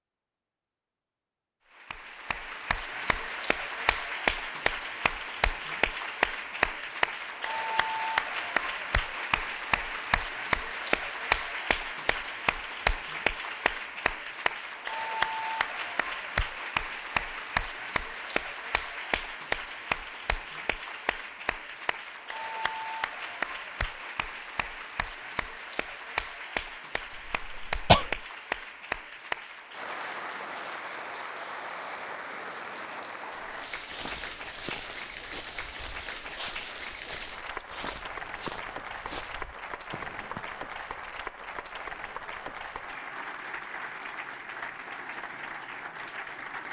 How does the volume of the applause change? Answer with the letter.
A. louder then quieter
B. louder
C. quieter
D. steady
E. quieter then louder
C.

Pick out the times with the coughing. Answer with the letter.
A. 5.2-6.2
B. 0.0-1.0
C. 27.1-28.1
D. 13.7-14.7
C.